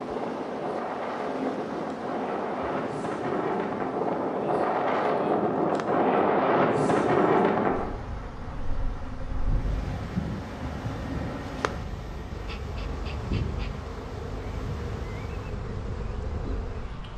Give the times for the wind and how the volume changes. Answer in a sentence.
The wind can be heard from 0.0 to 17.1 s, getting louder then quieter.